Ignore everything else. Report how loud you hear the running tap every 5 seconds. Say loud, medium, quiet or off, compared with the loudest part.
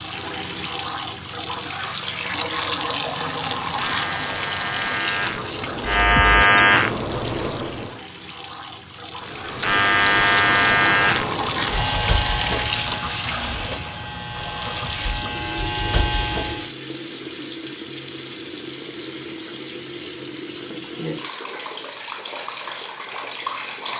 loud, medium, loud, medium, medium.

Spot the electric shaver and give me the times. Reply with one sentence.
You can hear the electric shaver from 3.5 to 8.0 s and from 9.2 to 16.7 s.